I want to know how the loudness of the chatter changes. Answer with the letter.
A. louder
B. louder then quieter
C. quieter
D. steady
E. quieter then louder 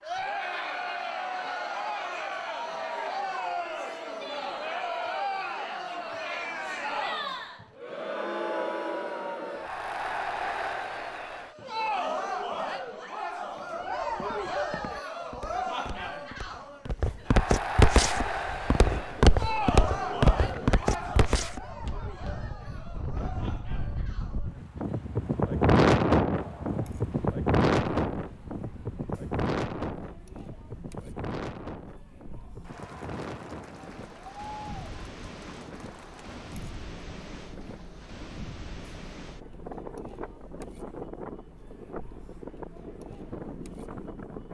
C.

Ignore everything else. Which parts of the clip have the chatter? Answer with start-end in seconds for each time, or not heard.
0.0-44.4.